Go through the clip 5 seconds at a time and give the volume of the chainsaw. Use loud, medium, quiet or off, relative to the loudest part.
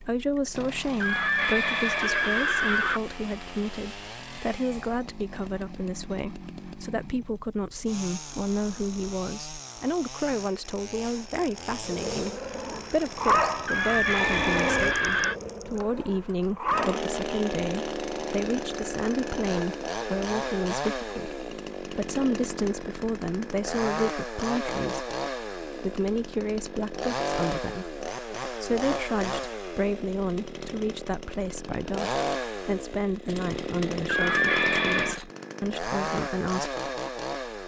medium, medium, medium, loud, loud, loud, loud, loud.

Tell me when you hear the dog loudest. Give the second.
13 s.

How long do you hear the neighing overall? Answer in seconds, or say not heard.
5 s.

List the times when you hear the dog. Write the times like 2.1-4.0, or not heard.
11.8-17.1.